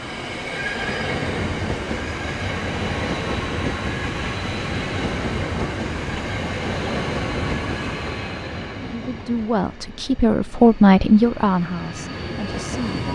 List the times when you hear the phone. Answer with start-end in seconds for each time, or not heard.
not heard.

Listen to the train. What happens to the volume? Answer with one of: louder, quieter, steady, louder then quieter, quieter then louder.
quieter.